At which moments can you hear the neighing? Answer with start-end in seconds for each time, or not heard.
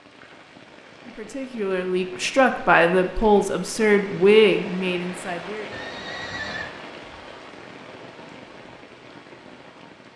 5.7-6.7.